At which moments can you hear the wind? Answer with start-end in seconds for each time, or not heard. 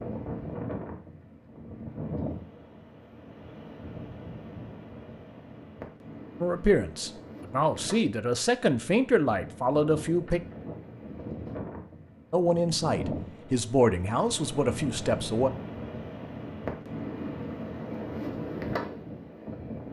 0.0-19.8.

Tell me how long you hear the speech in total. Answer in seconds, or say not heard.
7 s.